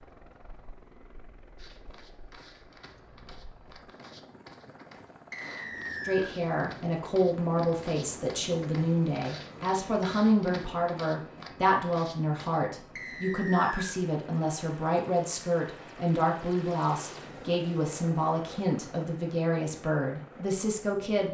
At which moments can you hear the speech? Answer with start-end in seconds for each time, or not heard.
6.0-21.2.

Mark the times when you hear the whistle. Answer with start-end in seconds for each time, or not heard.
5.3-6.3, 12.9-13.9.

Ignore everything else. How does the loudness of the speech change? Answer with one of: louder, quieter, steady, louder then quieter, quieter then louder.
steady.